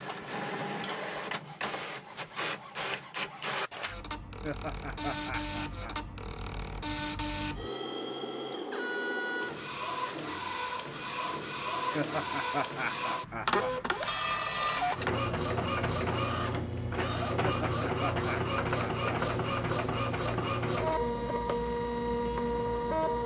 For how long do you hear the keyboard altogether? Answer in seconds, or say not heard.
not heard.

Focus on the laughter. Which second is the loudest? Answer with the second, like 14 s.
13 s.